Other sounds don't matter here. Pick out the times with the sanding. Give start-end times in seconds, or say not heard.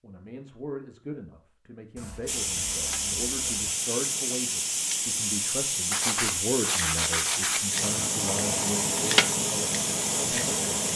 1.9-3.8, 5.9-7.7.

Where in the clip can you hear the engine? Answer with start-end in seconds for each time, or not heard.
7.7-10.9.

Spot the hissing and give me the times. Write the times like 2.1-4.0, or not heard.
2.2-10.9.